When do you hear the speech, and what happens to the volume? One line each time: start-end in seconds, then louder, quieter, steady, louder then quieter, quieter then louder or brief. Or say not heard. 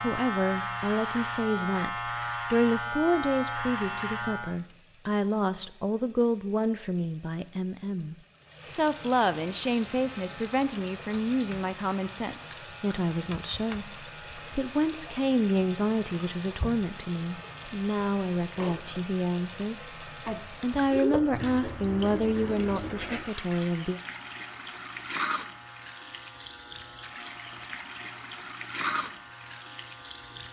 0.0-24.0 steady.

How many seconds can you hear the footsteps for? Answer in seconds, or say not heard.
not heard.